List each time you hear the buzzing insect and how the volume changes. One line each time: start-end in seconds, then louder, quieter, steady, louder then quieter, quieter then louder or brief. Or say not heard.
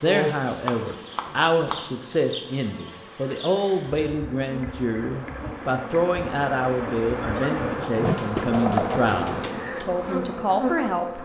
0.0-11.2 louder.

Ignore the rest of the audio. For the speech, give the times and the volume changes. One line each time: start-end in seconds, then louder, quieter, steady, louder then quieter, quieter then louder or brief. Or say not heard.
0.0-11.2 steady.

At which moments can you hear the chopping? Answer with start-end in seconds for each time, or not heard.
0.1-1.9, 7.2-9.6.